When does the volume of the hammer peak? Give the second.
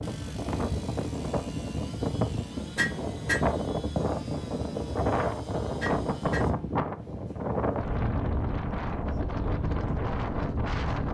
3 s.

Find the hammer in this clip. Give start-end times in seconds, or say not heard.
2.8-3.5, 5.8-6.5.